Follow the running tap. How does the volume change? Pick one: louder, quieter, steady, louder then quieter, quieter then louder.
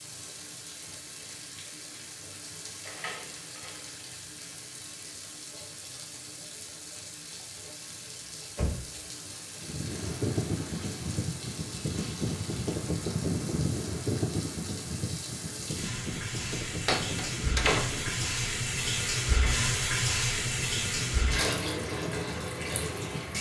louder.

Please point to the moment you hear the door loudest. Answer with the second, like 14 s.
18 s.